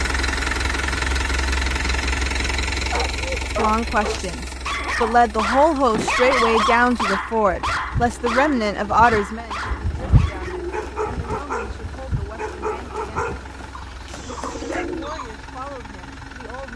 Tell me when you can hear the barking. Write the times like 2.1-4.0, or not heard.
2.9-14.8.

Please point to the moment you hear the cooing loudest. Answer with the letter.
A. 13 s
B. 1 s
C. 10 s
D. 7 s
C.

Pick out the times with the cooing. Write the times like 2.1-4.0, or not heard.
7.0-15.5.